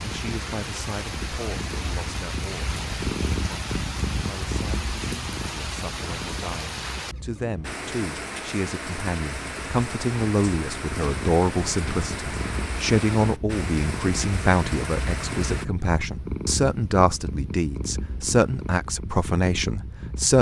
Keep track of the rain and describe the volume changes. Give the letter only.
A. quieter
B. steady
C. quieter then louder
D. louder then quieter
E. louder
B.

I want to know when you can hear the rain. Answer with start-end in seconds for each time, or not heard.
0.0-15.7.